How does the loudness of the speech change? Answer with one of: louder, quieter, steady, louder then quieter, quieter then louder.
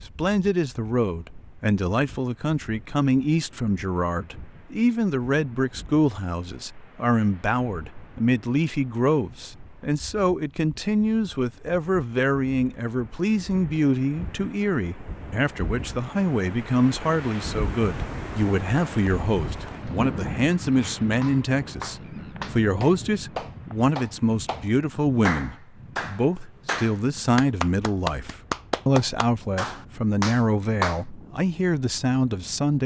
steady.